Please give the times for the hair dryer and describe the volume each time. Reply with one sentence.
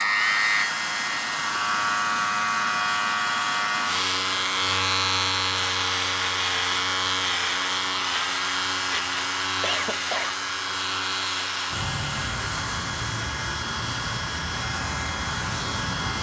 You can hear the hair dryer from 0.0 to 16.1 s, at a steady volume.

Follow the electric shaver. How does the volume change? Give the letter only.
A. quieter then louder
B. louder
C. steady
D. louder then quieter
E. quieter
E.